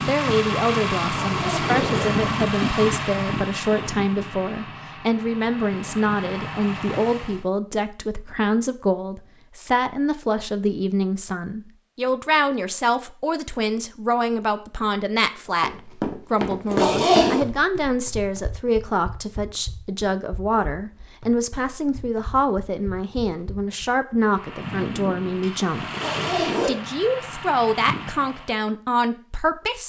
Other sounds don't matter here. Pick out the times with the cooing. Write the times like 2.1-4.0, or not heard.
not heard.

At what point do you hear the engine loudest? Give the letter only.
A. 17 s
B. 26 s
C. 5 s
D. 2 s
D.